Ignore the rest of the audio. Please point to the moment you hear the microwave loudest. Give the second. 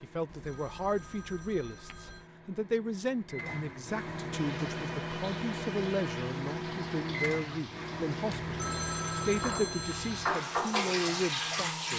7 s.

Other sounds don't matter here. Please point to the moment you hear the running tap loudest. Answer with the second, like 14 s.
11 s.